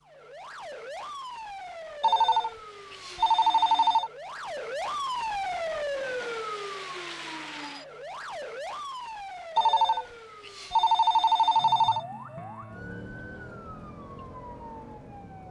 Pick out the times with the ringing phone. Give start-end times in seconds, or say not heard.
2.0-4.1, 9.6-12.0.